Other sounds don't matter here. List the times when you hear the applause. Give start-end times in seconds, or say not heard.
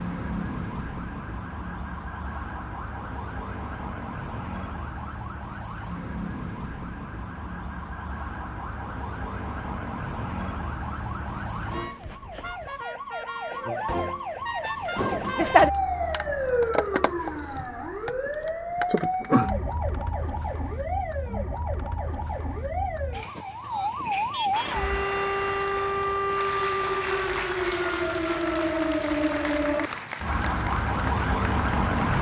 24.5-32.1.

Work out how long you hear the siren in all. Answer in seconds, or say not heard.
32 s.